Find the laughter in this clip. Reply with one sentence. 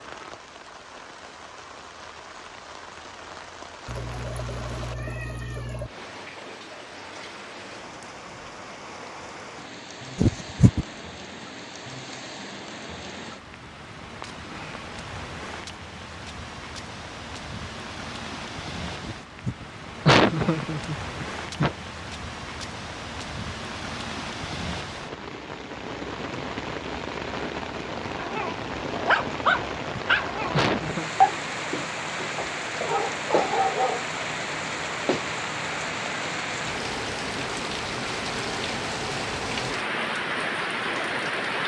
The laughter can be heard from 10.2 to 10.8 s, from 19.0 to 21.8 s and from 29.5 to 31.1 s.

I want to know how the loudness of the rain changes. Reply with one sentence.
The loudness of the rain goes up.